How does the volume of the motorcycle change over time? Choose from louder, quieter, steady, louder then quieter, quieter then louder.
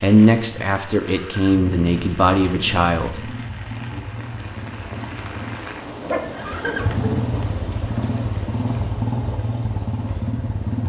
louder.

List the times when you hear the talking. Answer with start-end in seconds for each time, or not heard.
0.0-3.3.